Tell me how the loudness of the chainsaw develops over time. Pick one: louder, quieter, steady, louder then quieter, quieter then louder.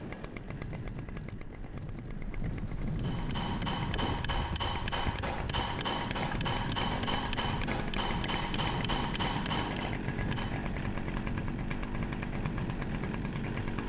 louder.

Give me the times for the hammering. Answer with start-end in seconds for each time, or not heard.
3.0-10.6.